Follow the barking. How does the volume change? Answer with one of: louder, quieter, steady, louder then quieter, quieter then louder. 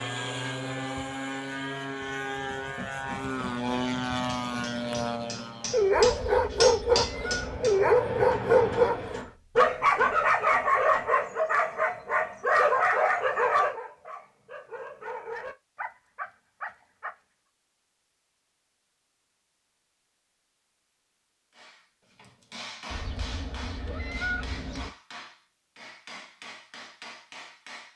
quieter.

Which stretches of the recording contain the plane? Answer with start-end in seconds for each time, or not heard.
0.0-9.3.